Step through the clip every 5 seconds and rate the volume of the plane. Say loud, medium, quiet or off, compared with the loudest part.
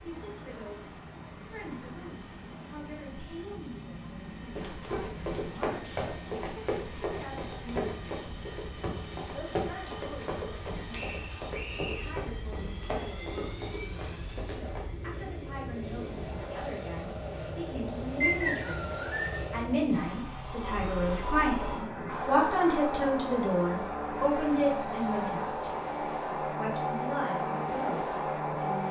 quiet, quiet, quiet, medium, loud, loud.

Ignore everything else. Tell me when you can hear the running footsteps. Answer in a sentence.
You can hear the running footsteps from 4.5 to 14.9 s.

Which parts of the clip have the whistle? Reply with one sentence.
The whistle can be heard from 10.9 to 12.2 s and from 18.2 to 19.4 s.